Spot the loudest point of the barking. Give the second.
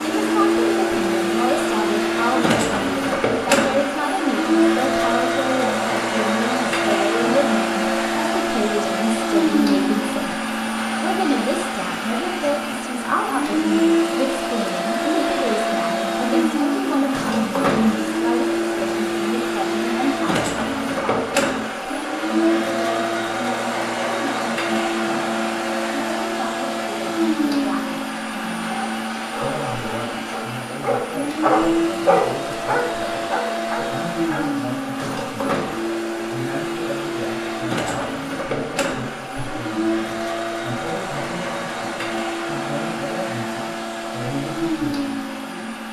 32 s.